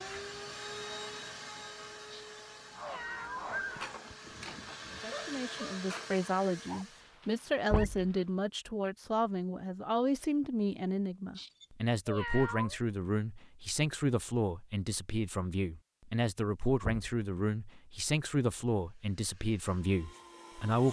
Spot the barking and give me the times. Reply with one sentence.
The barking can be heard from 2.8 to 8.3 s.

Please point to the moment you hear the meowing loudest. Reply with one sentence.
The volume of the meowing peaks at 12 seconds.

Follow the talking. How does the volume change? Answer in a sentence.
The loudness of the talking stays about the same.